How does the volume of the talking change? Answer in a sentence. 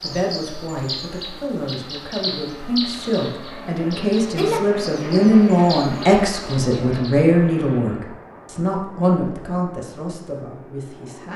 The volume of the talking goes up, then down.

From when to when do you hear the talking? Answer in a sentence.
You can hear the talking from 0.0 to 11.3 s.